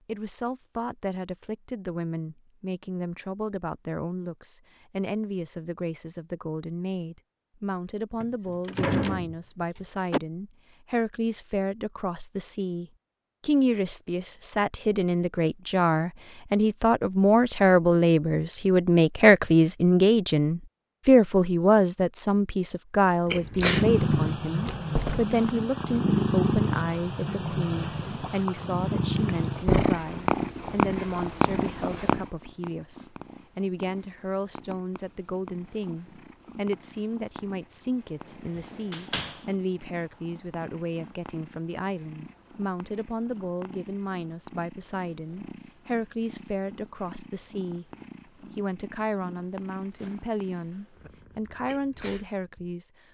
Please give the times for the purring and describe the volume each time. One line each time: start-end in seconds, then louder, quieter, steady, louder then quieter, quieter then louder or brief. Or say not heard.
23.2-52.8 quieter.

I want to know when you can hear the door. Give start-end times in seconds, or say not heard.
8.2-10.2, 24.6-25.3, 38.5-39.4.